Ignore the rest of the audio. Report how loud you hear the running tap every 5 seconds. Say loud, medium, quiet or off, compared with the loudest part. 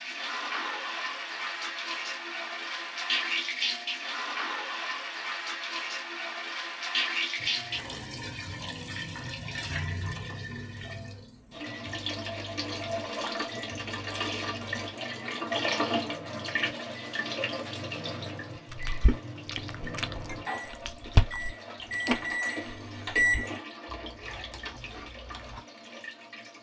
loud, loud, loud, loud, medium, quiet.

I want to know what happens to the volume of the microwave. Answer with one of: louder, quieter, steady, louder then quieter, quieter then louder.
louder.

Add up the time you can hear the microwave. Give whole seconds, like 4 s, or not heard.
16 s.